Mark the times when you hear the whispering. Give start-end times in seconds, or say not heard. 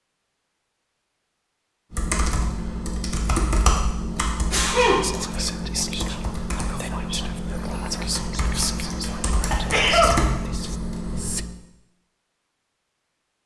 5.0-11.4.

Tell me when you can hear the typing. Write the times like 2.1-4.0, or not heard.
1.9-11.4.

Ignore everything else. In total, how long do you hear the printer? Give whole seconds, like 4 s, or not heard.
not heard.